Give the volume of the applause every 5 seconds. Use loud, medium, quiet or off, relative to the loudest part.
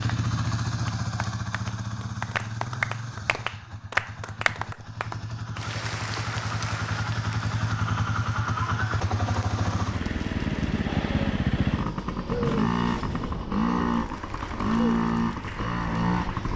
loud, medium, quiet, quiet.